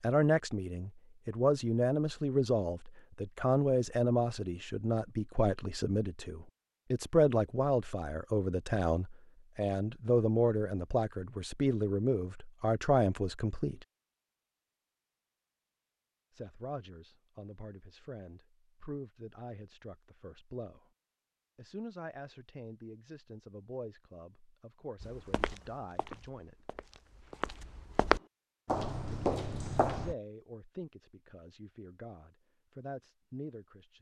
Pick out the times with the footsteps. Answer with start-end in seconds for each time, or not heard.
25.0-30.1.